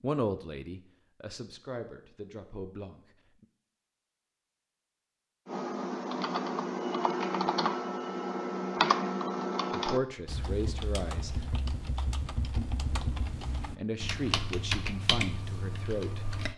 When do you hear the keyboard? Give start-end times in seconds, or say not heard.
5.5-16.5.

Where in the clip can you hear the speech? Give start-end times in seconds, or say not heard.
0.0-3.5, 9.7-11.5, 13.7-16.2.